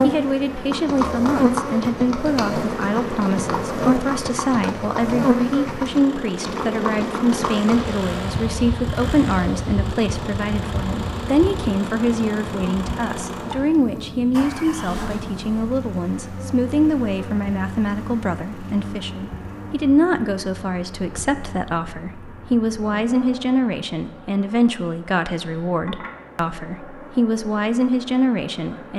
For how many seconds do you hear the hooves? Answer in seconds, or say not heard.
7 s.